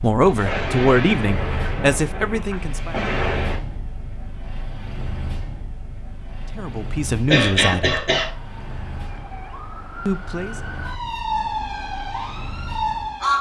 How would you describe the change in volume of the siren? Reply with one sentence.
The volume of the siren goes up.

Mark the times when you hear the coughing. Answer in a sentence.
The coughing can be heard from 7.3 to 8.3 s.